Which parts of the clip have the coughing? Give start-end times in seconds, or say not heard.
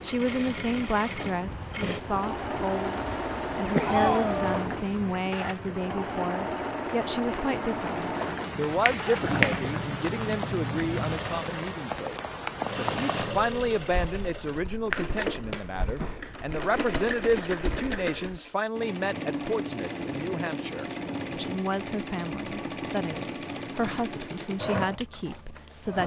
3.7-4.6.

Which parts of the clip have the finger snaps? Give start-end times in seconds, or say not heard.
8.8-9.7, 14.4-16.2.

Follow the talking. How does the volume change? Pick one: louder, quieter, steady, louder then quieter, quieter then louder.
steady.